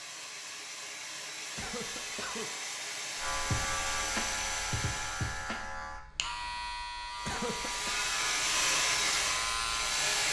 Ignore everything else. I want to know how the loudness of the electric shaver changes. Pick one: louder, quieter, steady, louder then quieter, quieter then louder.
steady.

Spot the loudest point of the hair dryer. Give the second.
9 s.